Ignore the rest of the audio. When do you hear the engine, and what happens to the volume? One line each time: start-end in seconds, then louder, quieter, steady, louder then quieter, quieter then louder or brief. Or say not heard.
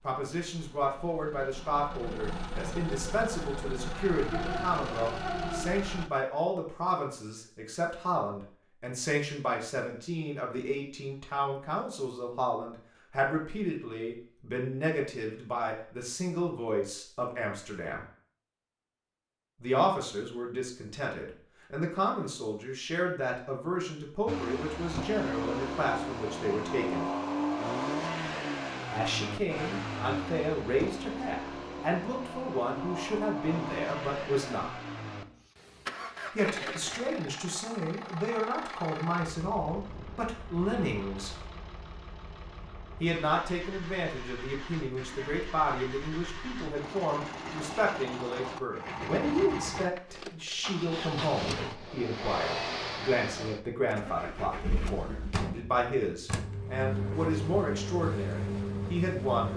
0.0-6.1 louder
24.2-59.5 quieter then louder.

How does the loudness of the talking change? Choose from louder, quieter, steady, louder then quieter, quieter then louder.
steady.